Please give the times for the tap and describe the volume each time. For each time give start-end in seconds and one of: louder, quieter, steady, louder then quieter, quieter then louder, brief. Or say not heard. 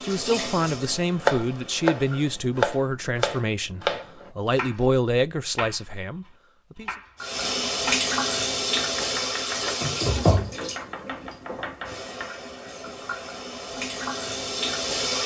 0.0-2.5 brief
7.2-15.2 quieter then louder.